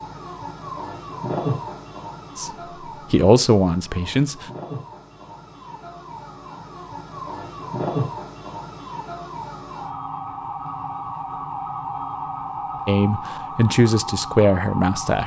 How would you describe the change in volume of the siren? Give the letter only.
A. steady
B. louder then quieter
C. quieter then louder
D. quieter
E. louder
C.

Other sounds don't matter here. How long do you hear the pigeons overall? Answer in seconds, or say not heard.
not heard.